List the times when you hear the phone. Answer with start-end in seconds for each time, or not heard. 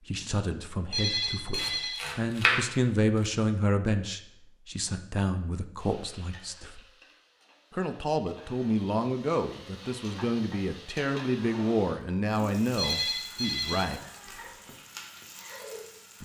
0.9-2.0, 12.8-14.6.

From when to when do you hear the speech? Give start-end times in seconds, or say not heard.
0.1-6.8, 7.7-14.0.